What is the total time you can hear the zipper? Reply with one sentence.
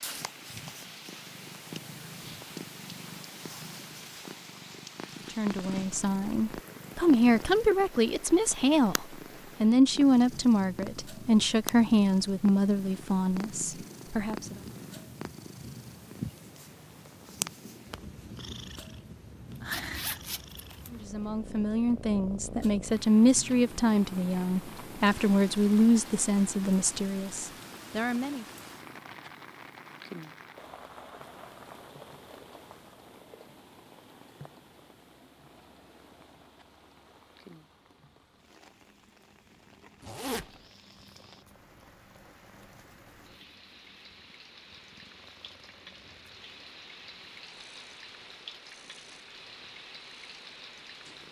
The zipper can be heard for 2 seconds in total.